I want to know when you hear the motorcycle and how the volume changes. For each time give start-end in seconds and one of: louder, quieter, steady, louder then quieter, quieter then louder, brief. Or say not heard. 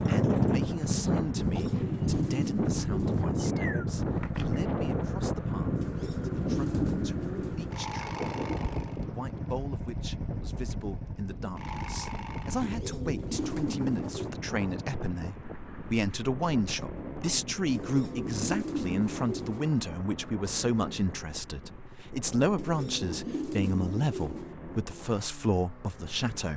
0.0-26.5 quieter.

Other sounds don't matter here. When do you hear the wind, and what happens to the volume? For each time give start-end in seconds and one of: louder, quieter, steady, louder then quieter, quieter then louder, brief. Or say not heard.
0.0-26.3 quieter.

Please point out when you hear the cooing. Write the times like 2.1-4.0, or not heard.
1.4-3.4, 5.8-7.8, 12.6-14.3, 17.7-19.7, 22.6-24.6.